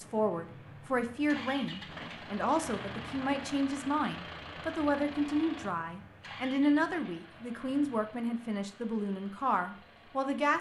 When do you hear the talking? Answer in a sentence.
The talking can be heard from 0.0 to 10.5 s.